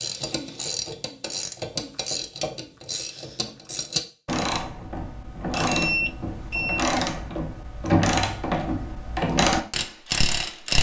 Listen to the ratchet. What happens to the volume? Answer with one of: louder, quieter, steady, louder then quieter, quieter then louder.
louder.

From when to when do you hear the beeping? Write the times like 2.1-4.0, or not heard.
5.7-6.8.